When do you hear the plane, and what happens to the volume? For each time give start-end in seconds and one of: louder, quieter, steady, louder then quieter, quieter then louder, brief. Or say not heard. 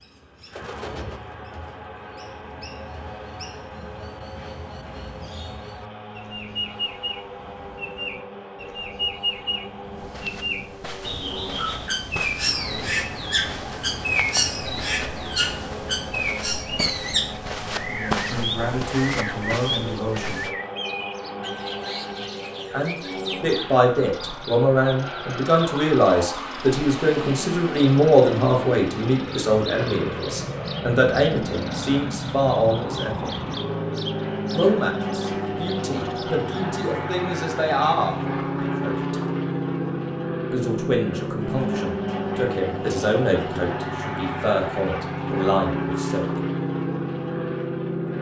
0.0-48.1 louder.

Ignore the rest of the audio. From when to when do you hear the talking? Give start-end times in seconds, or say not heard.
17.9-20.4, 22.7-33.3, 34.5-39.1, 40.5-46.4.